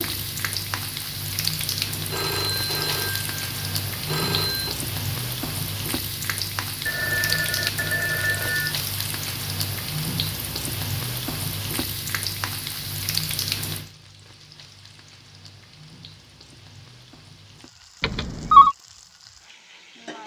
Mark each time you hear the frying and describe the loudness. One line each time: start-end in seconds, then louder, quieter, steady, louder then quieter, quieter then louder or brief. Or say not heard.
0.0-20.2 quieter.